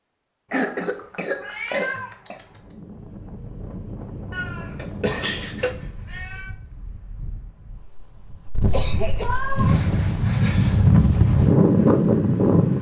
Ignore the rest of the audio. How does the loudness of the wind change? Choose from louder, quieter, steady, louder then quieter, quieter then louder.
quieter then louder.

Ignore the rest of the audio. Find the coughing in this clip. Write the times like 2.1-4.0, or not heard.
0.5-2.4, 4.8-5.7, 8.7-9.3.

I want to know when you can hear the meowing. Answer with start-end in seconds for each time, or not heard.
0.5-2.8, 4.3-6.5, 9.2-9.8.